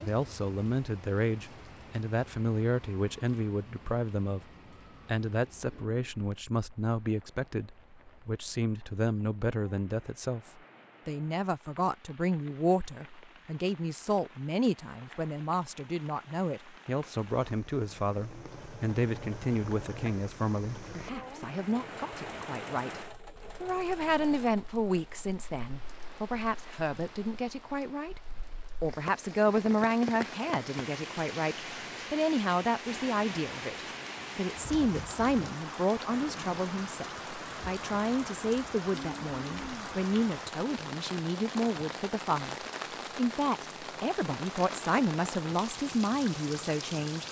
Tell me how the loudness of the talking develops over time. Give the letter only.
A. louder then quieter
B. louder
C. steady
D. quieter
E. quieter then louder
C.